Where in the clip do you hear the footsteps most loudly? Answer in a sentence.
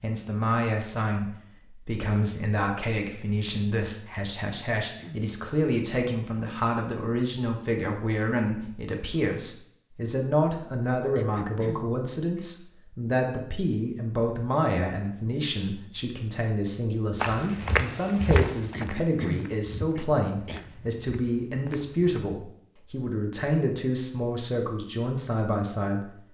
The volume of the footsteps peaks at 18 seconds.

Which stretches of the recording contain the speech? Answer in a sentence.
You can hear the speech from 0.0 to 26.1 s.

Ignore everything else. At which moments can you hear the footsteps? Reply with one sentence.
The footsteps can be heard from 17.2 to 22.2 s.